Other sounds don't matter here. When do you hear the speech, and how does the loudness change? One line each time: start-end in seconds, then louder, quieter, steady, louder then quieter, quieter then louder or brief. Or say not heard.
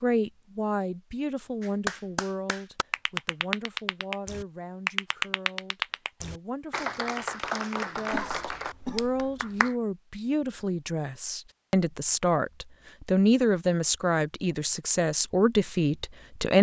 0.0-16.5 quieter then louder.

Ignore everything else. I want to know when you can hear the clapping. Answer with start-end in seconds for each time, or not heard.
1.6-9.8.